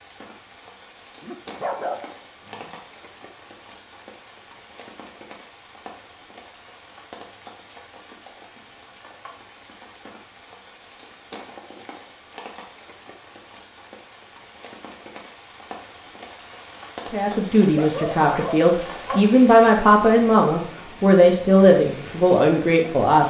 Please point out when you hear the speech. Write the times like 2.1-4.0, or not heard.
17.1-23.2.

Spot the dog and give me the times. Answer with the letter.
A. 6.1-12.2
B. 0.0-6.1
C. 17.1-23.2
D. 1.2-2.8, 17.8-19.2
D.